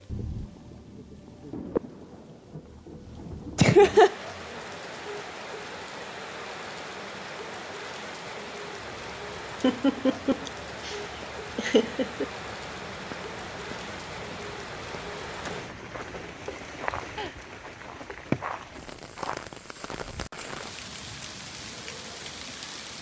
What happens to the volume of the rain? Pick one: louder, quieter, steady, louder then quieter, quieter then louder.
steady.